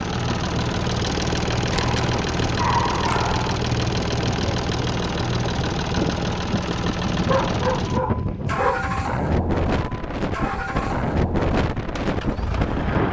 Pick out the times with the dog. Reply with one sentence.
You can hear the dog from 1.7 to 3.6 s and from 7.2 to 8.8 s.